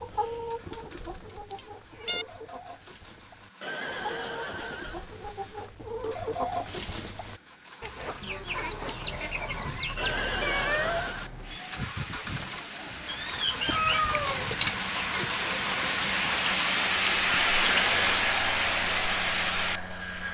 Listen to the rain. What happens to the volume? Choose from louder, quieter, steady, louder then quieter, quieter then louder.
louder.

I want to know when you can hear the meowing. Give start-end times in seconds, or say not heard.
1.5-2.2, 10.4-11.8, 13.6-14.6.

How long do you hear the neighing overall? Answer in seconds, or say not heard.
3 s.